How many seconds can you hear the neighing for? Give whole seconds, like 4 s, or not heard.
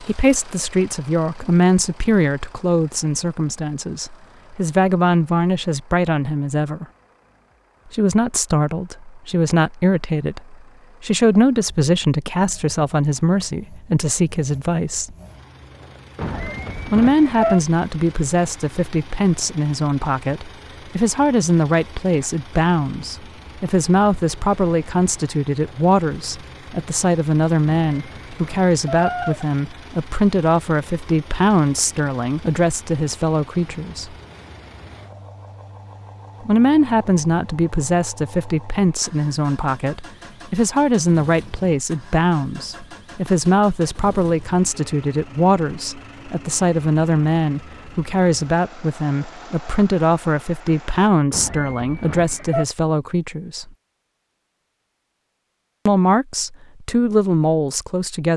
4 s.